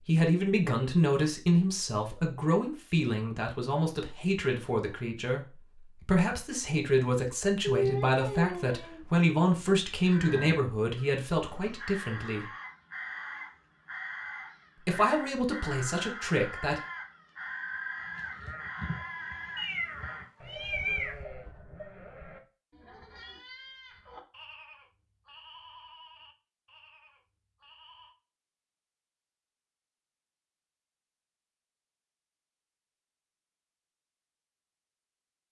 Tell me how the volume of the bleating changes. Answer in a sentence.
The volume of the bleating goes down.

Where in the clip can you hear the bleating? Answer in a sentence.
The bleating can be heard from 18.0 to 28.1 s.